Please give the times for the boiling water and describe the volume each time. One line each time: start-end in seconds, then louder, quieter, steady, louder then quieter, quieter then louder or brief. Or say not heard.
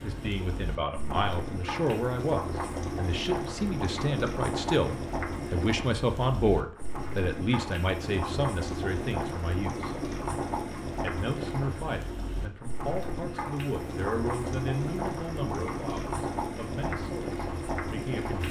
0.0-18.4 steady.